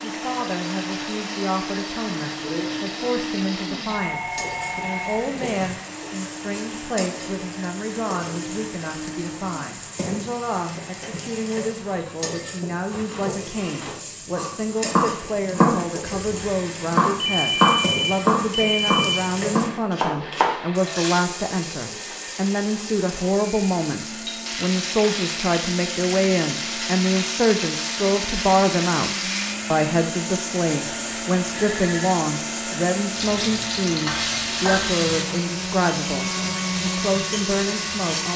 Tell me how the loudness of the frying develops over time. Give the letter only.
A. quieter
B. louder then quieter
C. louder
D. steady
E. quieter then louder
C.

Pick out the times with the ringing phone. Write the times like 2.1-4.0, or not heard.
3.9-5.8, 17.2-19.2, 31.5-32.2.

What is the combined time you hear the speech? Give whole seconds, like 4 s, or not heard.
38 s.